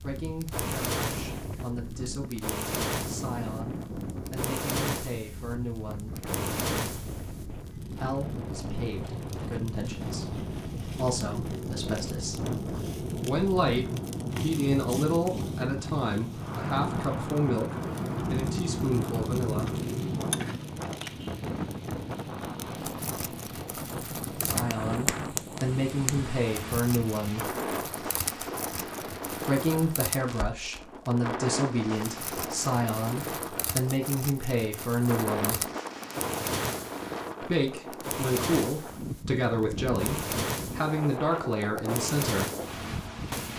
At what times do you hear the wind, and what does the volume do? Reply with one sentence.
The wind can be heard from 0.0 to 43.5 s, at a steady volume.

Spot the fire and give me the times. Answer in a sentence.
The fire can be heard from 0.0 to 43.5 s.